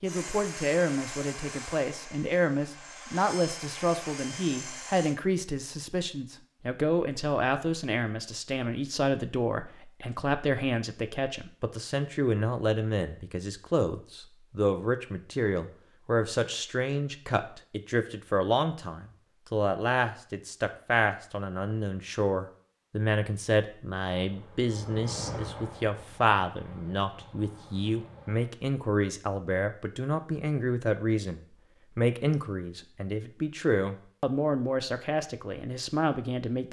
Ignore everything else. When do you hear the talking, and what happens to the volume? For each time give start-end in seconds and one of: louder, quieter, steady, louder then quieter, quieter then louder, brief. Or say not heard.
0.0-36.6 steady.